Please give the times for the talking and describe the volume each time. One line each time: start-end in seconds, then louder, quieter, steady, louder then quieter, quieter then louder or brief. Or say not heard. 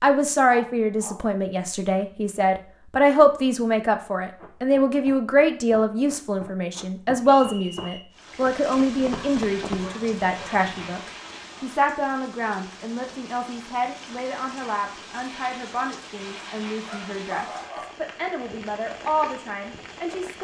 0.0-20.3 quieter.